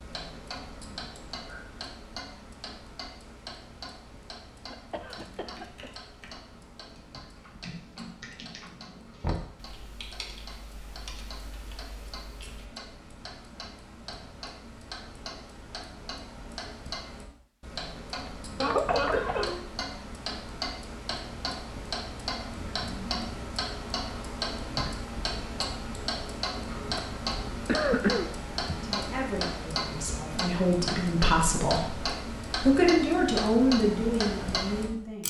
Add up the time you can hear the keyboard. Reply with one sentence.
The keyboard can be heard for 8 seconds in total.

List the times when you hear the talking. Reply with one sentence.
The talking can be heard from 28.7 to 35.2 s.